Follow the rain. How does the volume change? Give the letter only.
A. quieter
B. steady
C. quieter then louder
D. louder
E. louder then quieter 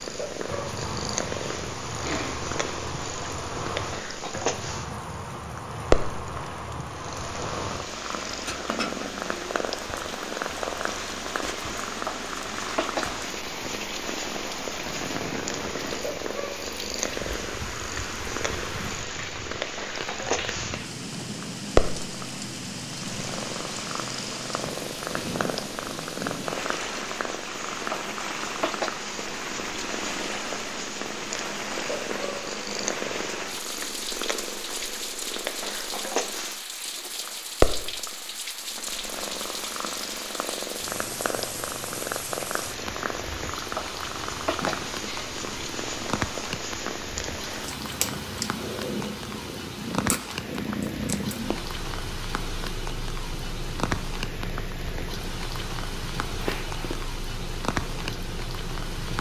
B.